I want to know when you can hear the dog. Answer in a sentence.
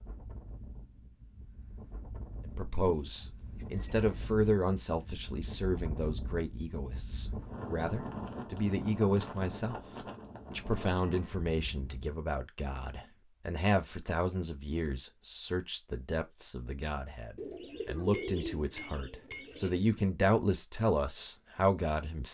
The dog can't be heard in this clip.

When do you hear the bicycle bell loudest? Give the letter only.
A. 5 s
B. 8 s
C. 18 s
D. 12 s
C.